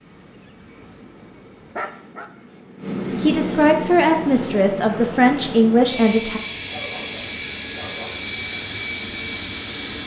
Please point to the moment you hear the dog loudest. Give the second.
2 s.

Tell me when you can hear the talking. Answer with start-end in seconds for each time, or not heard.
3.2-6.4.